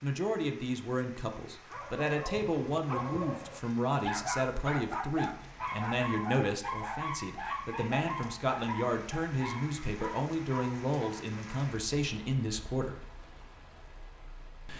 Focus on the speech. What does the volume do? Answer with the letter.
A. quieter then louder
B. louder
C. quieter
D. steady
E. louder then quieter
D.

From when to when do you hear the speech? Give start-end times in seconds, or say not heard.
0.0-13.0.